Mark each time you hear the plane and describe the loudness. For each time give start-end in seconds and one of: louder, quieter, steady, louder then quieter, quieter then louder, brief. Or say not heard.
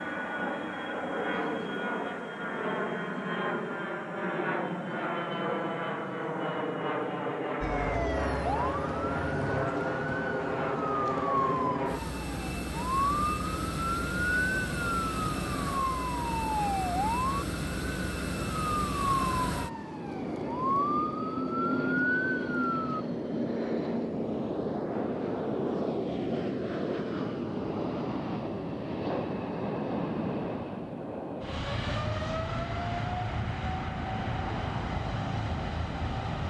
0.0-36.4 steady.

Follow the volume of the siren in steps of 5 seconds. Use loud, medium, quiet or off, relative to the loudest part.
off, loud, loud, loud, loud, off, off, off.